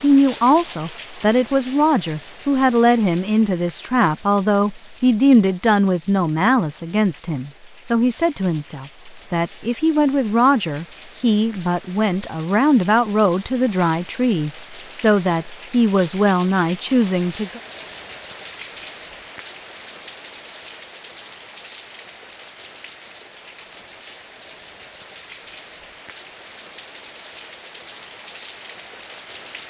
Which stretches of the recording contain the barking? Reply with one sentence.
You can't hear the barking here.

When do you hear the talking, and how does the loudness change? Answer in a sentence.
The talking can be heard from 0.0 to 17.6 s, at a steady volume.